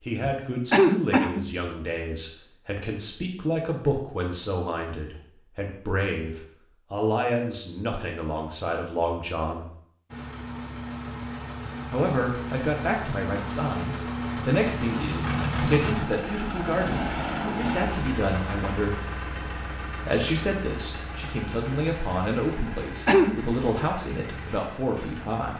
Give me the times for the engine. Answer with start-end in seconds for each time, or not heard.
10.1-25.5.